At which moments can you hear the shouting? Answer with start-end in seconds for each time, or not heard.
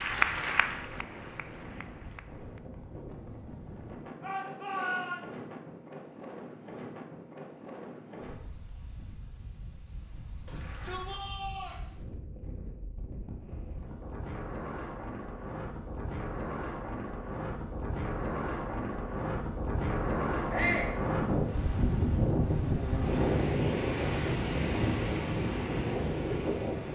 4.2-5.2, 10.4-11.8, 20.5-20.9.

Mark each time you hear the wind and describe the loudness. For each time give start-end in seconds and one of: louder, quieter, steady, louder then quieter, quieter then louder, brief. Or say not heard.
0.0-26.9 louder.